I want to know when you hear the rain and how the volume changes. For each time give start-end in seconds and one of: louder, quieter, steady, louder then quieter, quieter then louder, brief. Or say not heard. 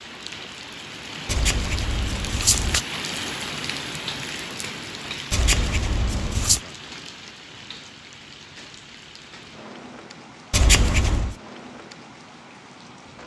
0.0-13.2 quieter.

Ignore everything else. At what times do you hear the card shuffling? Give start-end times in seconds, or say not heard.
1.2-2.9, 5.3-6.6, 10.5-11.3.